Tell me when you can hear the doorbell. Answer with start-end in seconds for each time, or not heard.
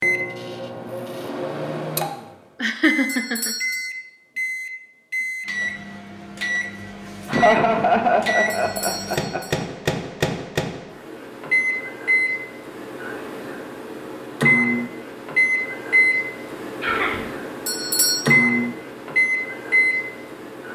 3.0-3.9, 8.4-9.7, 17.6-18.3.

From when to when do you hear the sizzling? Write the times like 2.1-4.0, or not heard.
not heard.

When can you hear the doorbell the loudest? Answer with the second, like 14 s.
18 s.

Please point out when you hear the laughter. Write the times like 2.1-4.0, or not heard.
2.6-3.5, 7.2-9.7, 16.8-17.3.